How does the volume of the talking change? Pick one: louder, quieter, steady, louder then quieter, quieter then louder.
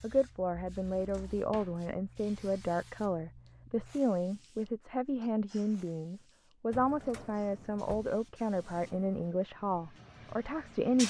steady.